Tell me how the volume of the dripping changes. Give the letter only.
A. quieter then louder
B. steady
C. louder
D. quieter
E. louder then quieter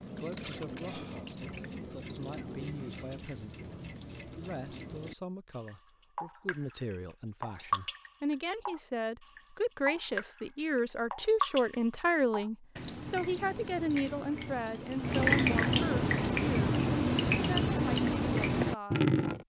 C.